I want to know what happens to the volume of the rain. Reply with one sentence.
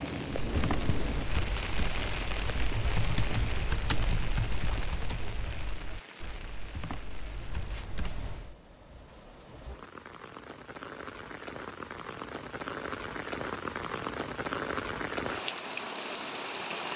The volume of the rain goes down, then up.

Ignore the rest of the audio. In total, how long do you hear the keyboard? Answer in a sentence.
The keyboard can be heard for 8 seconds in total.